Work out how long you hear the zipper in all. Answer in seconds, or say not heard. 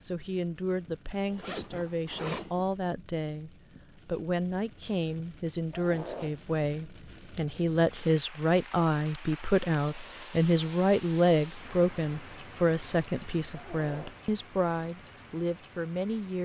3 s.